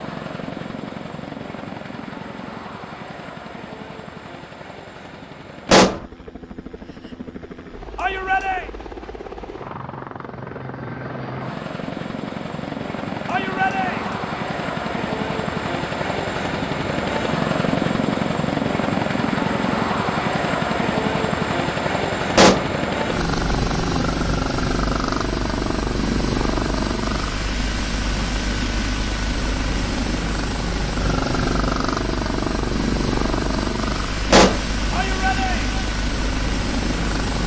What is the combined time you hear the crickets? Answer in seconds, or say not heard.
not heard.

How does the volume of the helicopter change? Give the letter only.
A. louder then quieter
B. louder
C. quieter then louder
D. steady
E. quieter
B.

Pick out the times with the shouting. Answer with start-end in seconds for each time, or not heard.
8.0-8.7, 13.2-14.2, 34.9-35.7.